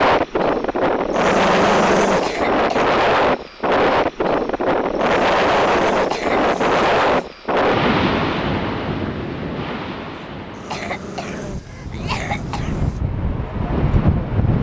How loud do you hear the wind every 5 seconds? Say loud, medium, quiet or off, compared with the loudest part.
loud, loud, medium.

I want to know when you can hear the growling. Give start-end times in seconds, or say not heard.
1.1-2.5, 5.0-7.3, 10.5-13.0.